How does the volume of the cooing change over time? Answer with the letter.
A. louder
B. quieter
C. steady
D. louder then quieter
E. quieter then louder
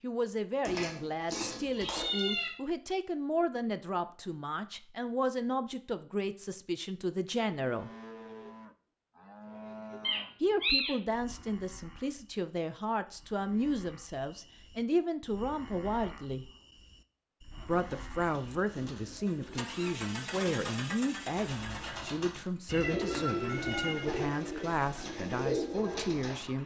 A.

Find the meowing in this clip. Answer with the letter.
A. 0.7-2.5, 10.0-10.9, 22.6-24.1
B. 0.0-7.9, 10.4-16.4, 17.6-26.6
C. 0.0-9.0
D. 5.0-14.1
A.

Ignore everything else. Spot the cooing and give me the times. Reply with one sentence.
You can hear the cooing from 17.5 to 26.5 s.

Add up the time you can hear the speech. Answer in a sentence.
The speech can be heard for 23 seconds in total.